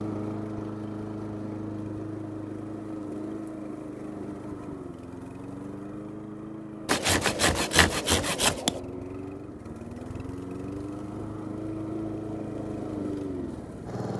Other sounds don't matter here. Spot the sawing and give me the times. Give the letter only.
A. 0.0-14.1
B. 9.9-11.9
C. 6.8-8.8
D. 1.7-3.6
C.